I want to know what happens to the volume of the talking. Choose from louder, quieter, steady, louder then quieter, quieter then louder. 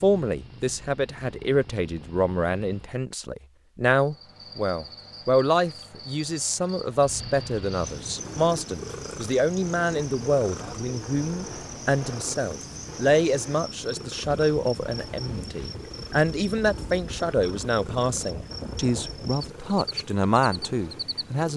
steady.